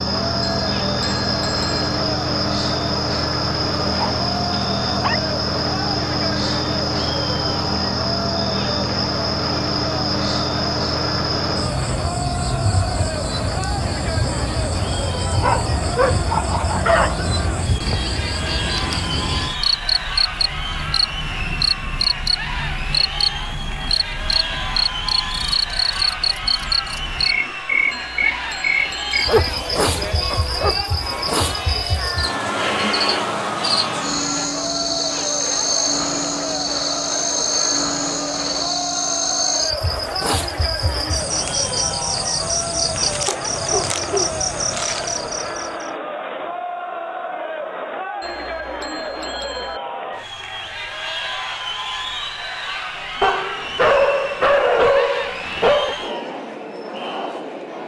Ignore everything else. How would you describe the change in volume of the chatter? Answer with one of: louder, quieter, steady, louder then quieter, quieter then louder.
steady.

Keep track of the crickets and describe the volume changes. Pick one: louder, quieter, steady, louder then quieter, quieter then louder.
steady.